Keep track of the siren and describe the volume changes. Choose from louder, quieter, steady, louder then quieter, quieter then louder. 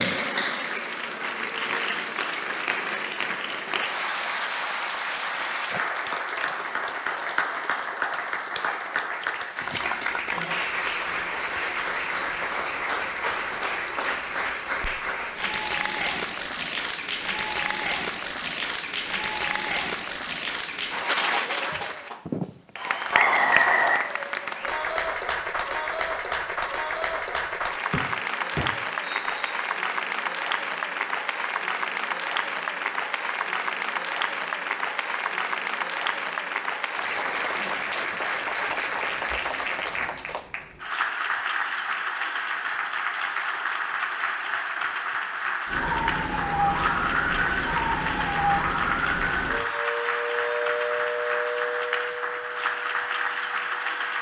quieter.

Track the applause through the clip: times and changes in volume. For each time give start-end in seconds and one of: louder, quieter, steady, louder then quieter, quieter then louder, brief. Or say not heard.
0.0-54.1 steady.